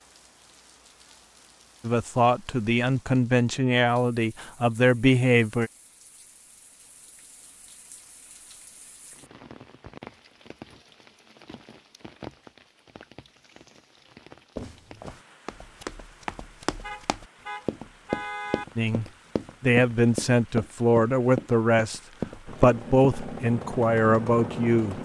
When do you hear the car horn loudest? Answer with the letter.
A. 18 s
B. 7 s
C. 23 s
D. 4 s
A.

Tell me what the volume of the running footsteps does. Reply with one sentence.
The volume of the running footsteps goes up.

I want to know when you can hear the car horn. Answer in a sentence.
You can hear the car horn from 16.8 to 18.6 s.